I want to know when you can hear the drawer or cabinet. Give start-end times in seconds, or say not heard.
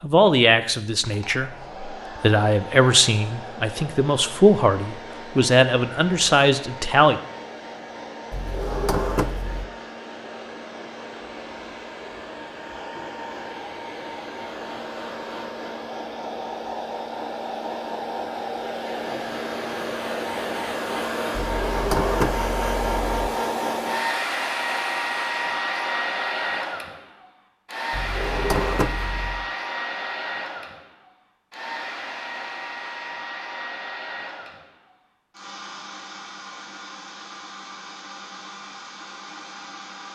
8.3-9.7, 21.3-23.3, 27.9-29.4.